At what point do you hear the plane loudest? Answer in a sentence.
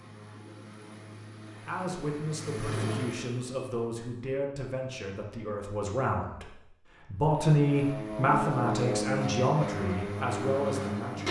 The volume of the plane peaks at 9 seconds.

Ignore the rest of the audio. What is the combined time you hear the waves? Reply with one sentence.
The waves can't be heard in this clip.